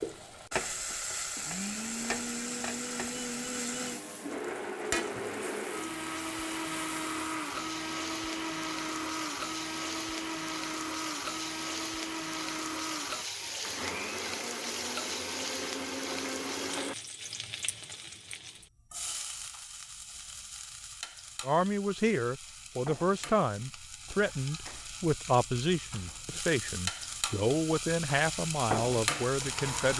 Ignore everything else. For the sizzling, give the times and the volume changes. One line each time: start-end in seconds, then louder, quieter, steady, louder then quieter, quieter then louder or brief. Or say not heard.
0.0-29.9 quieter then louder.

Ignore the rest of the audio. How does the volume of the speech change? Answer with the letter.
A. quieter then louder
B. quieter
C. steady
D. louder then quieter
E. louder
C.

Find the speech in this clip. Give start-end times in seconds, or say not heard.
21.4-29.9.